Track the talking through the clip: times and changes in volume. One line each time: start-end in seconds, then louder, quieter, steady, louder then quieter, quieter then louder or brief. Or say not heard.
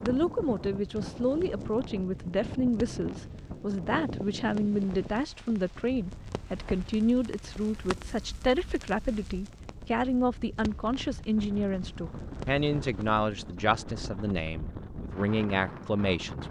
0.0-16.4 steady.